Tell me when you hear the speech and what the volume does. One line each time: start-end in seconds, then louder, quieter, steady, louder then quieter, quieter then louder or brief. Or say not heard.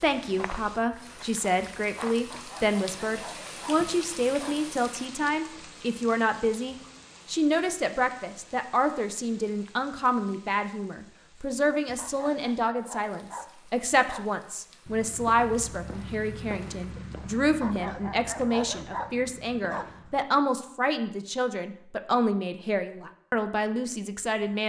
0.0-24.6 steady.